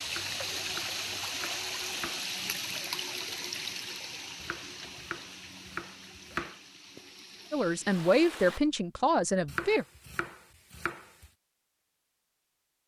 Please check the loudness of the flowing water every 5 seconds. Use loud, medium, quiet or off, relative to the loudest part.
loud, medium, off.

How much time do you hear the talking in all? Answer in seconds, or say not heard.
2 s.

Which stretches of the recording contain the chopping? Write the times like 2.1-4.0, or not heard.
0.1-2.2, 4.4-6.6, 9.4-11.3.